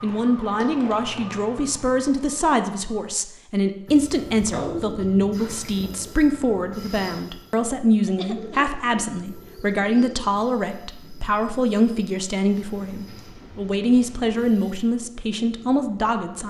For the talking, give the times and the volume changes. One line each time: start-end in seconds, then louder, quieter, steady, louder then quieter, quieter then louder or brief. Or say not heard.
0.0-16.4 steady.